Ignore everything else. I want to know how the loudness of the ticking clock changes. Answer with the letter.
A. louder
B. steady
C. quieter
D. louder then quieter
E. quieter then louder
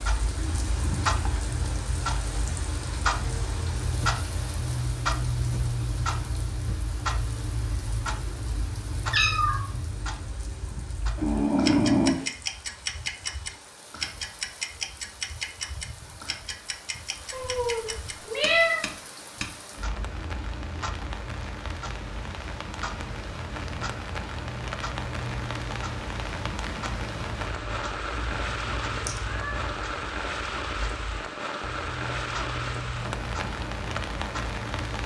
C.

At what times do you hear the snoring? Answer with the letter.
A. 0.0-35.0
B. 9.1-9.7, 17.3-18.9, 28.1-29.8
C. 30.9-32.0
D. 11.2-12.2
D.